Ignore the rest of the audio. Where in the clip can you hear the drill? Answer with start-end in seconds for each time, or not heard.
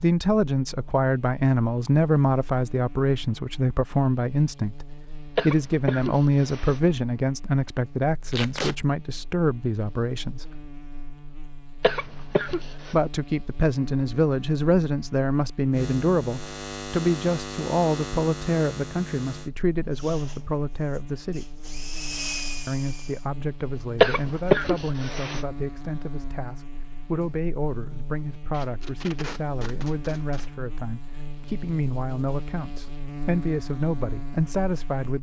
19.9-23.3.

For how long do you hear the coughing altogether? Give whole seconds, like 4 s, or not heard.
4 s.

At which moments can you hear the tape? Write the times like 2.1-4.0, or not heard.
8.3-8.8, 28.5-30.5.